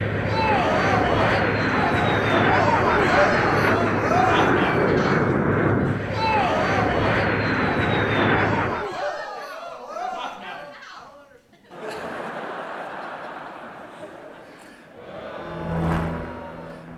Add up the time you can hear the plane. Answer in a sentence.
You can hear the plane for 11 seconds altogether.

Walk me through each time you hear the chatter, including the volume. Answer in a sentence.
You can hear the chatter from 0.1 to 16.9 s, getting quieter.